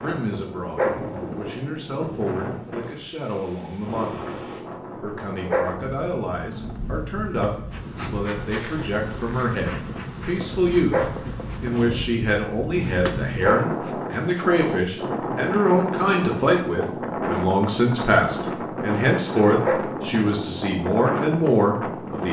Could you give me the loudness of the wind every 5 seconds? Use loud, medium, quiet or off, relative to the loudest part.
medium, medium, loud, loud, loud.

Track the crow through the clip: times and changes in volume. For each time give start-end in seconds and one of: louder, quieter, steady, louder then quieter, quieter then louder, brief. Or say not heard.
not heard.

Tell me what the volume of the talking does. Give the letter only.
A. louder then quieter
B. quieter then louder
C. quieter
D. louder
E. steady
D.